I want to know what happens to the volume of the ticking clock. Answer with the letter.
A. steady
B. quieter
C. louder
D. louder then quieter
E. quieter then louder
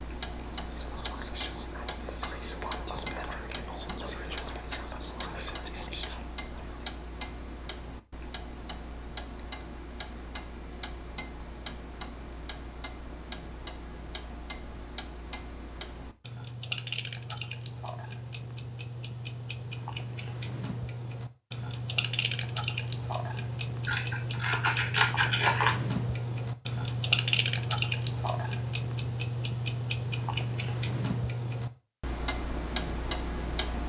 C.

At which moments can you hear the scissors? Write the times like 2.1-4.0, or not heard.
23.9-25.8.